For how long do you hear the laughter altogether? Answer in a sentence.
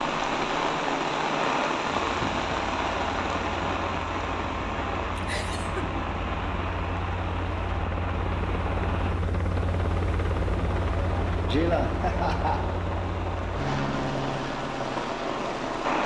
You can hear the laughter for 2 seconds altogether.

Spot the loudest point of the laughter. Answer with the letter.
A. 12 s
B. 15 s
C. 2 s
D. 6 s
A.